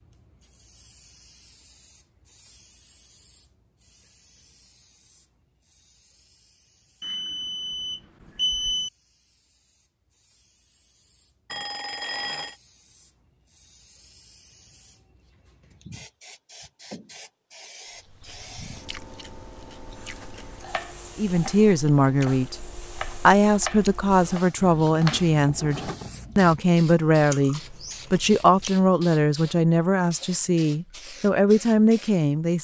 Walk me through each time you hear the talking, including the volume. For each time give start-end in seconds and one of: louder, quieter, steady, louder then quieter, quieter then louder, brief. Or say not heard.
21.1-32.5 steady.